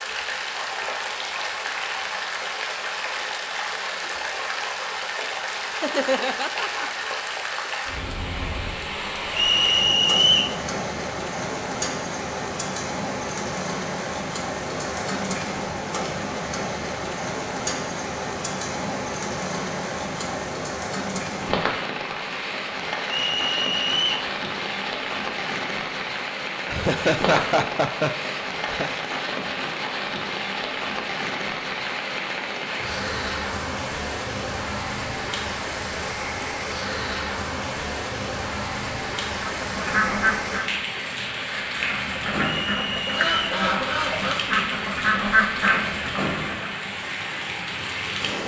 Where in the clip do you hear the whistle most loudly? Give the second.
10 s.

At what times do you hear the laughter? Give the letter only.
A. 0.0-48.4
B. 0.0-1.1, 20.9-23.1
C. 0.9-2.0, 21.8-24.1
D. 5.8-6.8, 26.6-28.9
D.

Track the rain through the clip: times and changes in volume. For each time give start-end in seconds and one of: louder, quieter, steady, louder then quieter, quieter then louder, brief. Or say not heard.
0.0-48.4 steady.